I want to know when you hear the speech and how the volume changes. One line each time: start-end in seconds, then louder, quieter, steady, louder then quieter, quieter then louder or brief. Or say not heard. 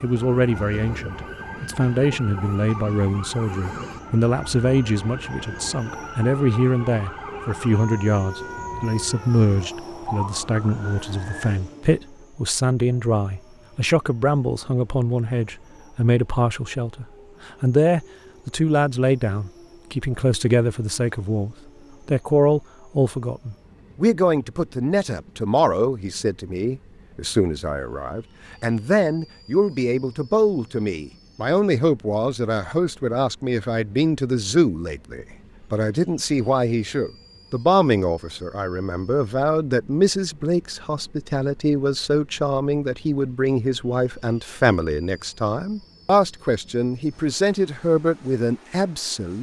0.0-49.3 steady.